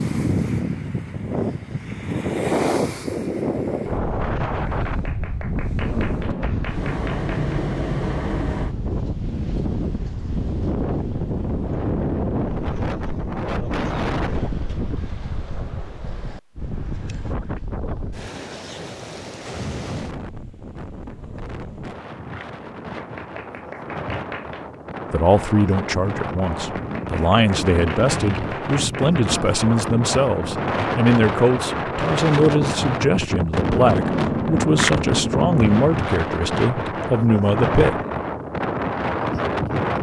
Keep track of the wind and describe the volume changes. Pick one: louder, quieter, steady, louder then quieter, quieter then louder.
quieter then louder.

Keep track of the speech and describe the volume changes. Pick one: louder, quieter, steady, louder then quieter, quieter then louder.
steady.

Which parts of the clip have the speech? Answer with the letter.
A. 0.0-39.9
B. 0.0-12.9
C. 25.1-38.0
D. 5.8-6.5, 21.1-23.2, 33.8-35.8
C.